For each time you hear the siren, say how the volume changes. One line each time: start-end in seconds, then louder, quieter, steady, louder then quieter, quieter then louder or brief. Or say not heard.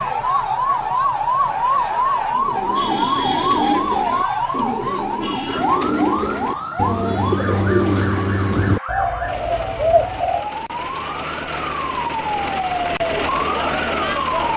0.0-14.5 quieter then louder.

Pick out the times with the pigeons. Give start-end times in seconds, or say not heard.
2.3-10.5.